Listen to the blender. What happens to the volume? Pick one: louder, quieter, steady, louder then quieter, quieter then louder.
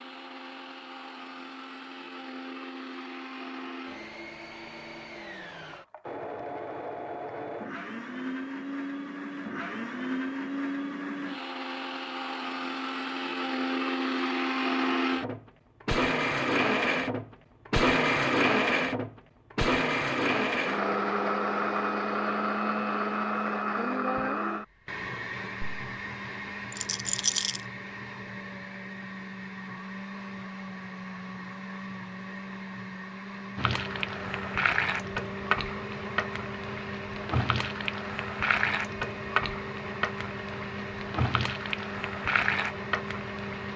louder then quieter.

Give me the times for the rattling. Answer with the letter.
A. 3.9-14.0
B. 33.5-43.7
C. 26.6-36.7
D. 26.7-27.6
D.